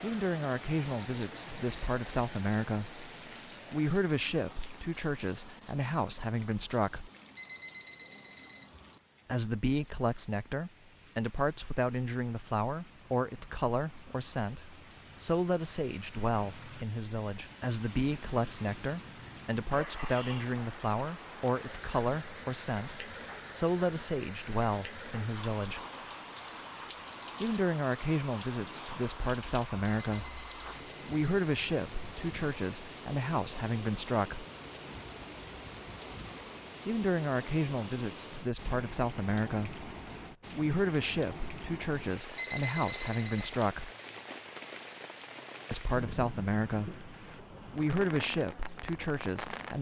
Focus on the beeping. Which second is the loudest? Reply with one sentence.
The loudest moment of the beeping is at 43 seconds.